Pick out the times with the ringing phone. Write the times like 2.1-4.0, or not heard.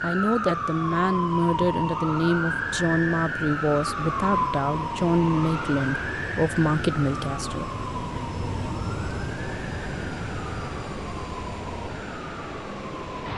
not heard.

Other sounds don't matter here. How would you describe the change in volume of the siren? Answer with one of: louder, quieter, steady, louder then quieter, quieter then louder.
quieter.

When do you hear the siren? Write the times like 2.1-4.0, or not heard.
0.0-13.3.